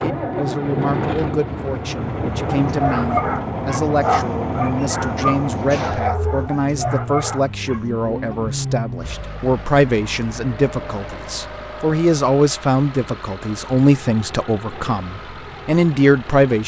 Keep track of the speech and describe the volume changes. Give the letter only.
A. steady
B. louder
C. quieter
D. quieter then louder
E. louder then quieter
B.